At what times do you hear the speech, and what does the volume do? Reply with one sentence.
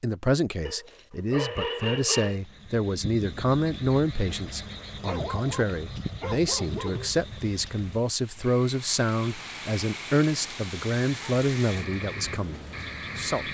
You can hear the speech from 0.0 to 13.4 s, at a steady volume.